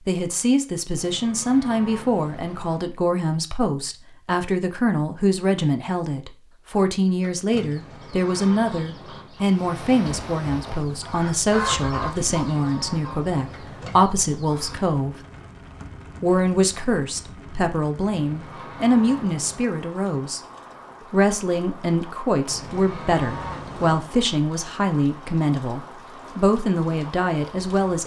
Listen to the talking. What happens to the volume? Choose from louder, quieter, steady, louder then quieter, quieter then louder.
steady.